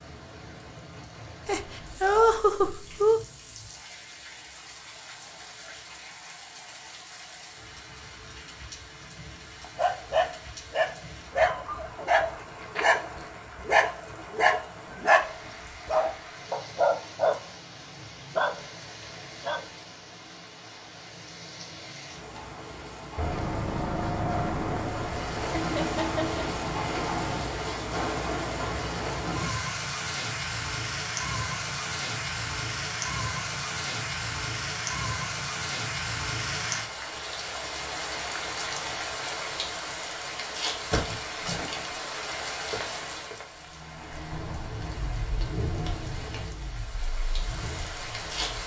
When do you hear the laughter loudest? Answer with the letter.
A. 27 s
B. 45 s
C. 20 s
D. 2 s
D.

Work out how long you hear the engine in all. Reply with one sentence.
The engine can be heard for 9 seconds in total.